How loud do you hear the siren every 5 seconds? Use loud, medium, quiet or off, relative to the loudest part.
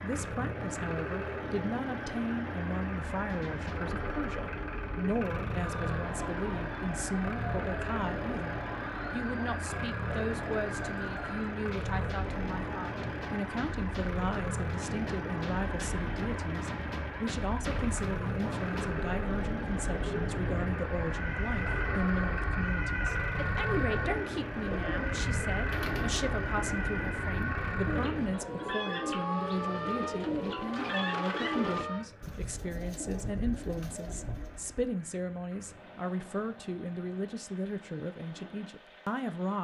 medium, medium, medium, medium, loud, loud, loud, off.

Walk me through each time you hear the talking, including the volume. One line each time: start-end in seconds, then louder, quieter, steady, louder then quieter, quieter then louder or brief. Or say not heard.
0.0-39.5 steady.